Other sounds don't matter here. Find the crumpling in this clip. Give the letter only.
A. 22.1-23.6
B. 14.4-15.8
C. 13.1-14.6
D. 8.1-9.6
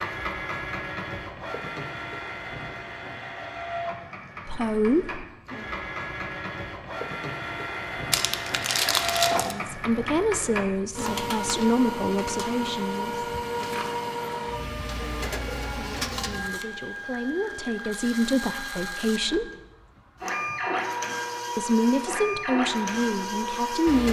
D.